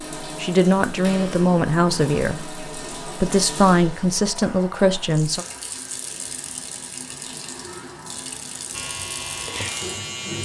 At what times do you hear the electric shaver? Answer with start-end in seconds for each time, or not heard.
8.7-10.4.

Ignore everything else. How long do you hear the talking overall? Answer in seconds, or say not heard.
5 s.